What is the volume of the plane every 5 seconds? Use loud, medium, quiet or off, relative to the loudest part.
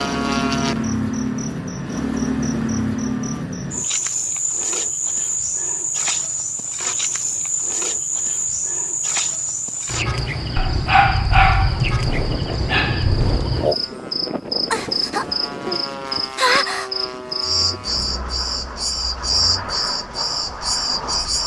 loud, off, loud, loud, loud.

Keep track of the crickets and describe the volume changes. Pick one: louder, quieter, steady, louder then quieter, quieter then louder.
steady.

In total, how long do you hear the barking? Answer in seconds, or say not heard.
3 s.